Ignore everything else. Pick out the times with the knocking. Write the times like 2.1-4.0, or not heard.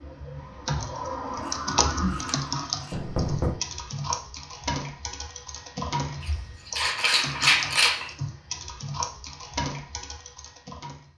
2.9-3.6, 7.1-7.7.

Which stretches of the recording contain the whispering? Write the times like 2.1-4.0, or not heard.
not heard.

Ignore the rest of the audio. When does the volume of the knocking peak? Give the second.
3 s.